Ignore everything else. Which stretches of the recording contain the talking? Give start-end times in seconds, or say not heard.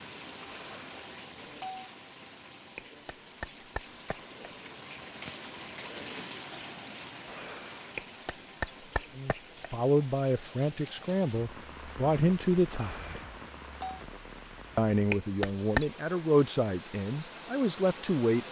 9.2-13.2, 14.8-18.4.